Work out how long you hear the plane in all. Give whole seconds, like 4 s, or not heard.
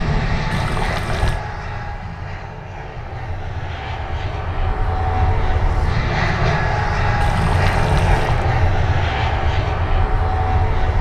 11 s.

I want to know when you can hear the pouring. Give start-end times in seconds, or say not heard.
0.5-1.4, 7.2-8.4.